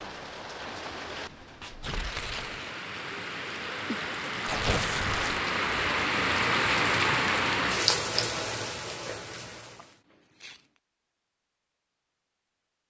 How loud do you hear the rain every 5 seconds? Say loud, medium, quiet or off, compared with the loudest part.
medium, loud, off.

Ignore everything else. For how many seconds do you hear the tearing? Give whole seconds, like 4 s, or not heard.
3 s.